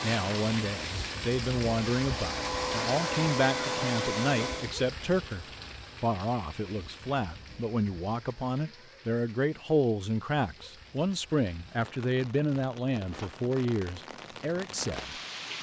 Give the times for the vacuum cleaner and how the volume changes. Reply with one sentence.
You can hear the vacuum cleaner from 0.0 to 4.8 s, getting louder.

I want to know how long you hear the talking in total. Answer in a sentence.
You can hear the talking for 15 seconds altogether.